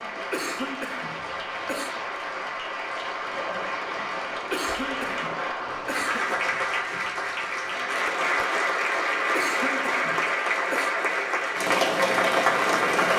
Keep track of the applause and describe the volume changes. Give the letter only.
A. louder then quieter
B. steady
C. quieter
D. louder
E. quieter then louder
D.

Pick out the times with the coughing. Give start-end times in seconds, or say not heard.
0.3-2.0, 4.5-6.6, 9.3-10.9.